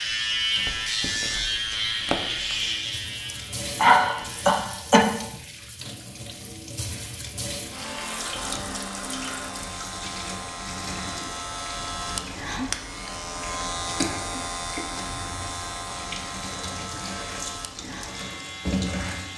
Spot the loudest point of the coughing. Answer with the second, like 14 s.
4 s.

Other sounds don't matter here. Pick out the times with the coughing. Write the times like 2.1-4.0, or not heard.
3.3-5.3, 14.0-14.8.